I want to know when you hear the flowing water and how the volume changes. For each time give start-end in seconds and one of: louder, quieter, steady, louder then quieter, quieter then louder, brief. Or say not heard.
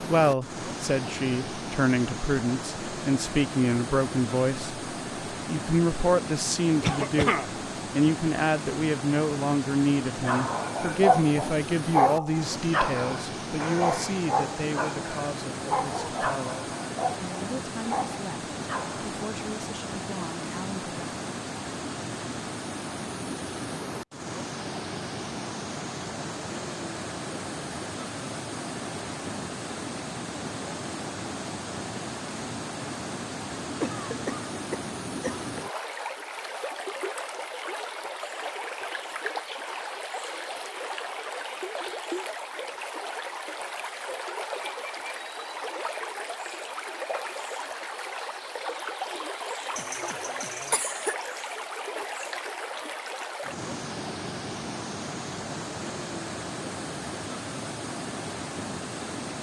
0.0-59.3 steady.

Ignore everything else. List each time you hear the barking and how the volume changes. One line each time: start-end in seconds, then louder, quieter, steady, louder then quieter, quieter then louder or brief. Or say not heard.
10.2-19.1 quieter.